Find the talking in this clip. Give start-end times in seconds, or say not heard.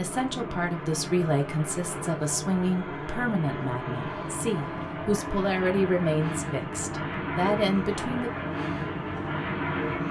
0.0-8.3.